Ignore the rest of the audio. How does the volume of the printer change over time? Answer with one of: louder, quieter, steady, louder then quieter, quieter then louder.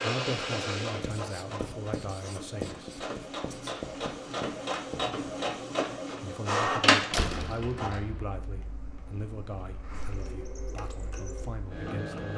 louder then quieter.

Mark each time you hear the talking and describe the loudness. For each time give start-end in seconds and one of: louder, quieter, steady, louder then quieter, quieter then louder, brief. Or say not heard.
0.0-3.0 brief
6.2-12.3 quieter.